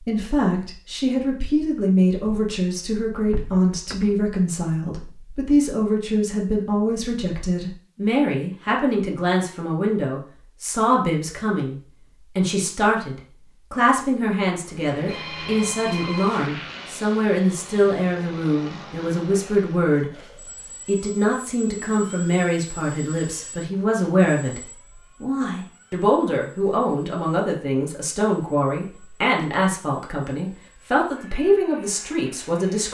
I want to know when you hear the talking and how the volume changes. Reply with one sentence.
You can hear the talking from 0.0 to 20.1 s, at a steady volume; and from 20.9 to 32.9 s, at a steady volume.